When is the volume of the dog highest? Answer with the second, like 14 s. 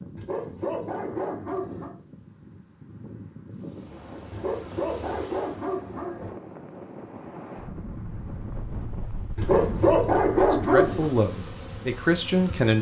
10 s.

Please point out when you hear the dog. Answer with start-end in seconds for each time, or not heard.
0.1-1.9, 4.3-6.3, 9.3-11.1.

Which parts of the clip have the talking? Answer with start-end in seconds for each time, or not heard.
10.3-12.7.